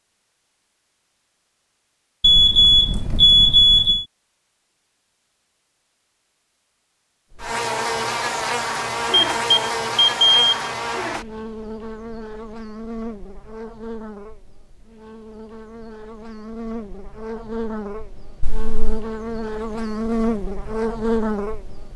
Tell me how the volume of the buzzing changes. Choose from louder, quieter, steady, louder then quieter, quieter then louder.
quieter then louder.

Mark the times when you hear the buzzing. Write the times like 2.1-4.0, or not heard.
7.3-21.9.